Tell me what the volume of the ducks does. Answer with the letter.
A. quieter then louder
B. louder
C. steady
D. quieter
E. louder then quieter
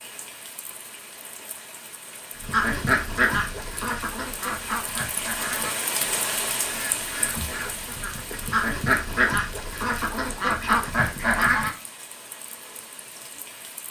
A.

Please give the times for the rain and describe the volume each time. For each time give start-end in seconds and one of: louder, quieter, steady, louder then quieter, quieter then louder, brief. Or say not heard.
0.0-13.8 louder then quieter.